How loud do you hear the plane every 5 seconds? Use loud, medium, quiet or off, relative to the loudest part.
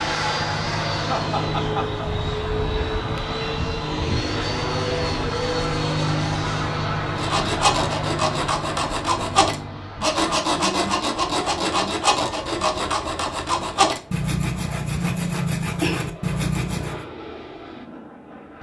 loud, loud, quiet, quiet.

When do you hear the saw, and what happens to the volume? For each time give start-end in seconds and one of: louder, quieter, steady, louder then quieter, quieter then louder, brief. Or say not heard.
7.2-17.1 steady.